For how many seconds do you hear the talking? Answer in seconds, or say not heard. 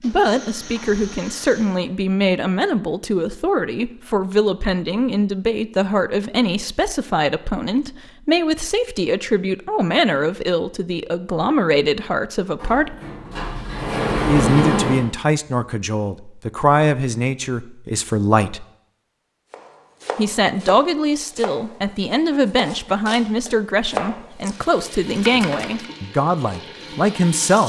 25 s.